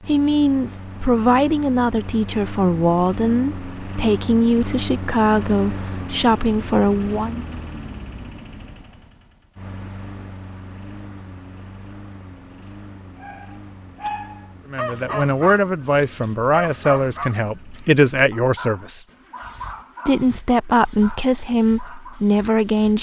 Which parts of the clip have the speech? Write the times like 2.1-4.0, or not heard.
0.1-7.5, 14.7-19.1, 20.1-22.9.